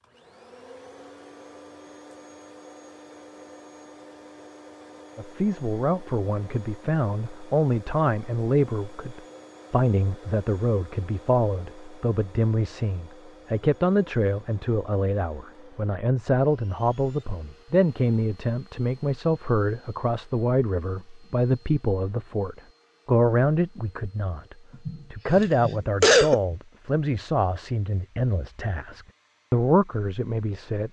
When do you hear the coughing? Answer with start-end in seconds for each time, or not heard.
24.9-26.6.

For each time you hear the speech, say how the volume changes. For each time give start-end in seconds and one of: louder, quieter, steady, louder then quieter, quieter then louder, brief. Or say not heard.
5.2-30.8 steady.